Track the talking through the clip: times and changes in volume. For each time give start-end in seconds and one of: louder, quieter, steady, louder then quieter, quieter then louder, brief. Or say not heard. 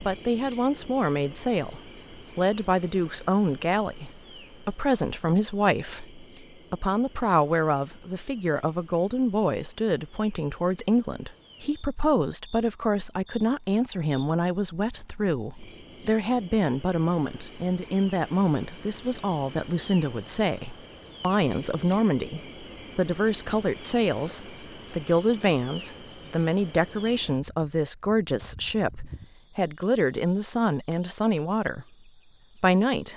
0.1-31.9 steady
32.6-33.1 brief.